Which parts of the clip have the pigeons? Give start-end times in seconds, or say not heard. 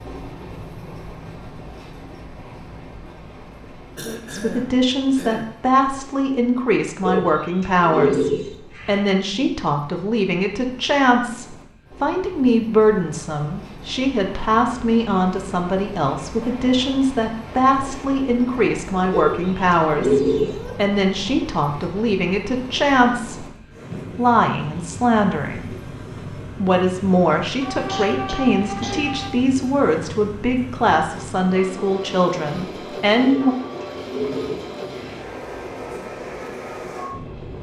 7.0-9.1, 19.1-20.6, 33.2-35.2.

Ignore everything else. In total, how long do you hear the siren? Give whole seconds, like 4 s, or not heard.
2 s.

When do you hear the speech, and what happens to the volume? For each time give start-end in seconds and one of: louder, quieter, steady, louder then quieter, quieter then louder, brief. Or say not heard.
4.3-25.9 steady
26.6-33.5 steady.